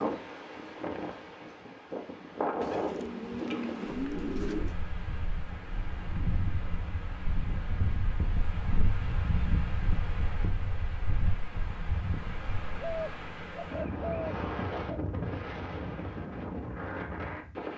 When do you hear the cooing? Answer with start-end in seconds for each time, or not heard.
2.6-4.8, 12.8-14.9.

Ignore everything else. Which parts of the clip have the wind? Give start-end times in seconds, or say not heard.
0.0-17.7.